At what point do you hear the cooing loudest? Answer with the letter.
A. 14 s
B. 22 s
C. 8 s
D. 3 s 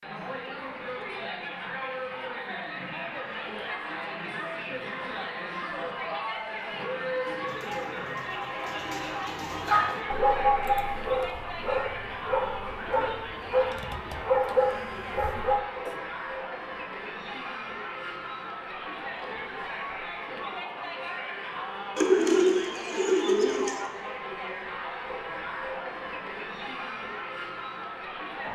B.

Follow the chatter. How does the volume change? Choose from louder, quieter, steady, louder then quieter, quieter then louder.
steady.